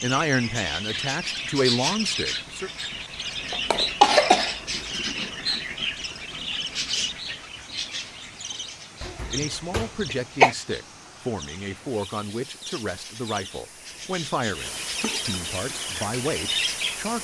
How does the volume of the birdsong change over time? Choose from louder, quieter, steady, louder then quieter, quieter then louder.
quieter then louder.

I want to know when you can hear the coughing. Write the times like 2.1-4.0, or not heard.
3.5-4.5, 9.0-10.6.